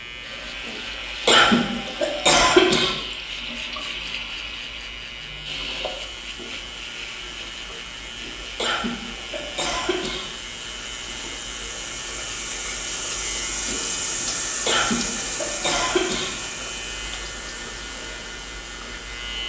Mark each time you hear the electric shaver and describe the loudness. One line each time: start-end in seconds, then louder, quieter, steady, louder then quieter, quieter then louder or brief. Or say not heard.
0.0-19.4 steady.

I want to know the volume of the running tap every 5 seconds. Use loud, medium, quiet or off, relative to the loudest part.
medium, medium, loud, loud.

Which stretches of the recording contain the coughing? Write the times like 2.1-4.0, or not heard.
1.2-3.0, 8.6-10.2, 14.7-16.3.